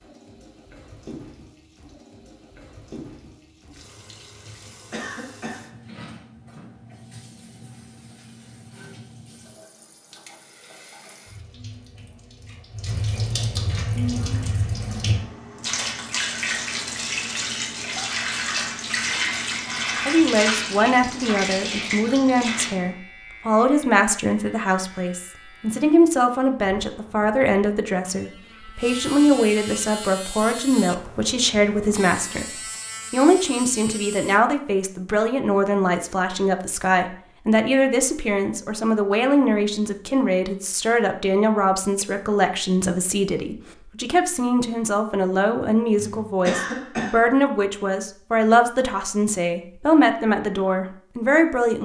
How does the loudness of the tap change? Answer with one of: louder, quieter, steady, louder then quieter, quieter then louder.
louder.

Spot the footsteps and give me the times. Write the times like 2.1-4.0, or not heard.
not heard.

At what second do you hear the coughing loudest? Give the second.
47 s.